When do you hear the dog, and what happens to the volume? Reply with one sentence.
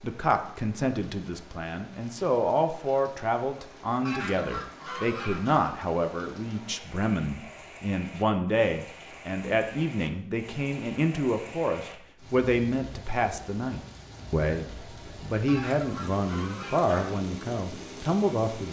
You can't hear the dog here.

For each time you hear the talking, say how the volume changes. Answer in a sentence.
You can hear the talking from 0.0 to 18.6 s, at a steady volume.